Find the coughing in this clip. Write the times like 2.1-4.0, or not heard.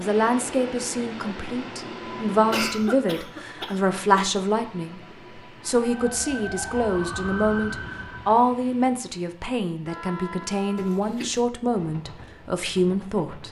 2.5-4.2, 10.8-11.3.